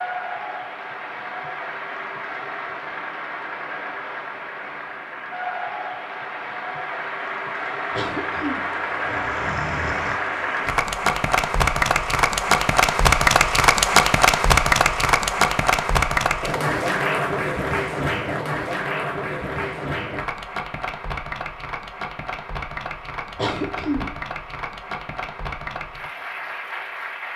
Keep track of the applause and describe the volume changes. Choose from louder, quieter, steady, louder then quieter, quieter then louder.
louder then quieter.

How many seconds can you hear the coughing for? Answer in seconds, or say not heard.
3 s.